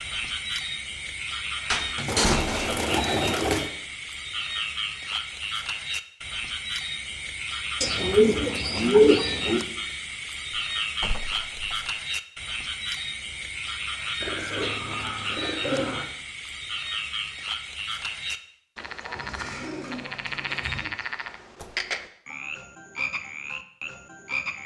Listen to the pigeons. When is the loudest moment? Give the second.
9 s.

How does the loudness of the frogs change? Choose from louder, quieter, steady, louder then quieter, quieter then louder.
steady.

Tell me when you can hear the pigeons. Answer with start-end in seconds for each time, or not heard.
2.0-3.7, 7.8-9.6, 14.2-16.1, 19.1-20.9.